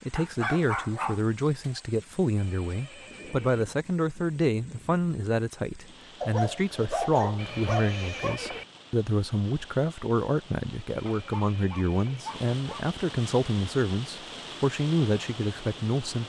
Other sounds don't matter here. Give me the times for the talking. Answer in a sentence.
You can hear the talking from 0.0 to 16.2 s.